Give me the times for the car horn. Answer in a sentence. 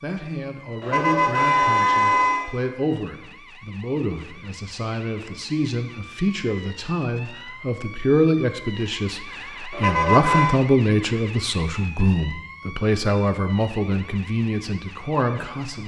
The car horn can be heard from 0.8 to 2.5 s and from 9.7 to 10.6 s.